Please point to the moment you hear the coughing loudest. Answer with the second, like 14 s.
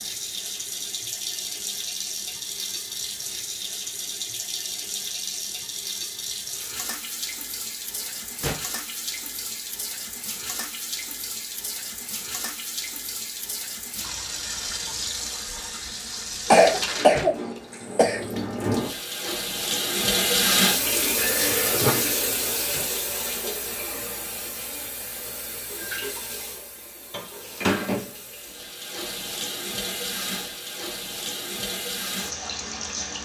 17 s.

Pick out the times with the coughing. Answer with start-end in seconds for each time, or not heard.
16.5-18.2.